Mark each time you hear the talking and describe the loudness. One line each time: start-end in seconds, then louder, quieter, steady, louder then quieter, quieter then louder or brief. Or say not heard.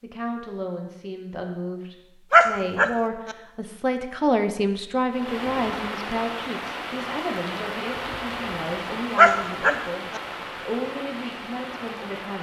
0.0-12.3 louder then quieter.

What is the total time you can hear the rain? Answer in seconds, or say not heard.
7 s.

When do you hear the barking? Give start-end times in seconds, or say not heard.
2.3-3.4, 9.2-10.2.